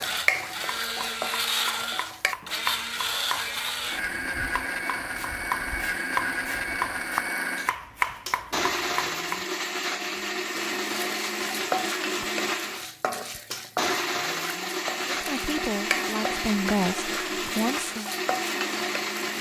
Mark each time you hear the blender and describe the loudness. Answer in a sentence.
The blender can be heard from 0.0 to 19.3 s, at a steady volume.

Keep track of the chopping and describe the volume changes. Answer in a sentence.
The volume of the chopping goes up.